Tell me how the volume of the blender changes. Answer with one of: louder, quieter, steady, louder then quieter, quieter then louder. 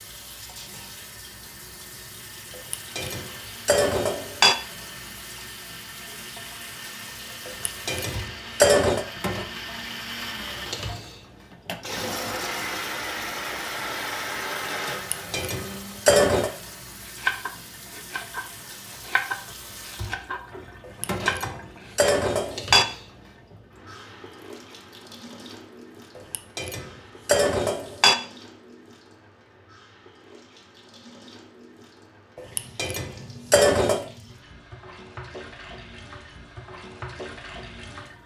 louder.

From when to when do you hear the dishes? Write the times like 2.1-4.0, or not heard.
2.7-4.5, 7.5-9.1, 14.9-16.5, 21.0-22.9, 26.1-28.1, 32.4-34.0.